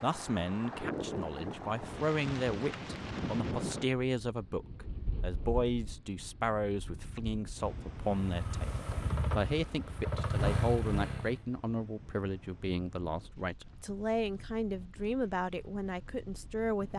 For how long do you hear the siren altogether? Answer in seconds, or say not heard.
not heard.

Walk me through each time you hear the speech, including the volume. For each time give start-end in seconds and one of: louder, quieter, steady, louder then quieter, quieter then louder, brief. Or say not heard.
0.0-16.9 steady.